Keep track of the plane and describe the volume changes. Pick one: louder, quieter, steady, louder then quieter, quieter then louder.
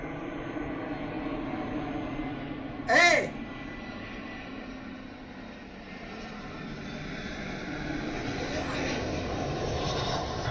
quieter then louder.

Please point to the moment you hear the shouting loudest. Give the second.
3 s.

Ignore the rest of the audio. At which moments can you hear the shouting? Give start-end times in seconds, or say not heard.
2.9-3.4, 8.4-8.8.